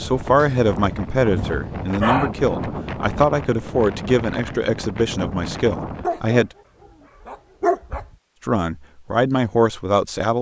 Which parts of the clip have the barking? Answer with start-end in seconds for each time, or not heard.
0.3-2.3, 6.0-6.4, 7.2-8.2.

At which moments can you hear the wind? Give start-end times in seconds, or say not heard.
0.0-6.1.